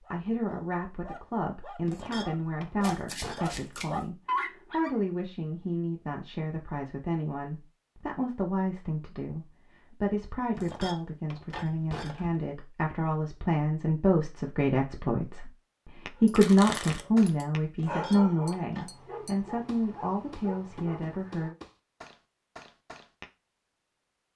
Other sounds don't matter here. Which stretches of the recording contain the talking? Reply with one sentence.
You can hear the talking from 0.1 to 15.5 s and from 16.2 to 21.6 s.